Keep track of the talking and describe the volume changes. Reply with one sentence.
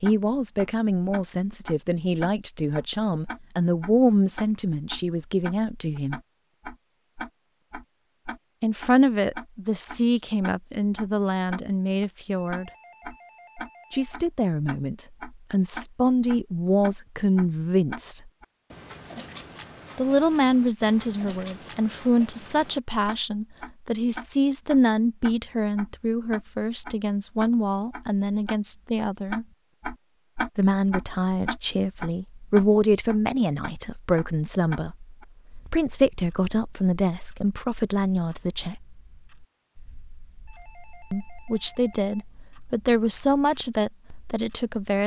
The volume of the talking stays about the same.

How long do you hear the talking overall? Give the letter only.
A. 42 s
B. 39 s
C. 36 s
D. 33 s
C.